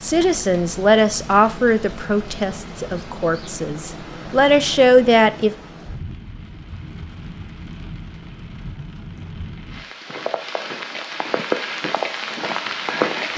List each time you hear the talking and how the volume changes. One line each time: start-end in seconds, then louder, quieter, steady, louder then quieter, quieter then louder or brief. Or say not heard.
0.0-5.5 quieter then louder.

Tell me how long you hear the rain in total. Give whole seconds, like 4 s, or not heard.
13 s.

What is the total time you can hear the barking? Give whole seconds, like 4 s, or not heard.
not heard.